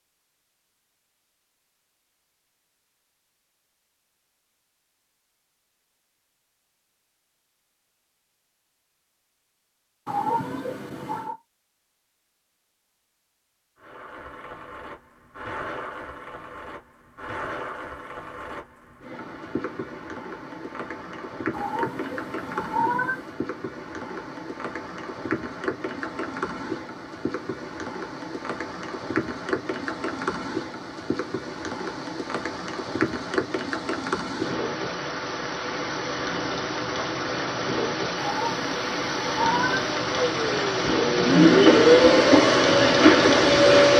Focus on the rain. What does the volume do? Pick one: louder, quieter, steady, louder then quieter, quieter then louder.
louder.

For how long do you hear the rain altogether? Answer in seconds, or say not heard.
30 s.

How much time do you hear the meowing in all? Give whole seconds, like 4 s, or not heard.
5 s.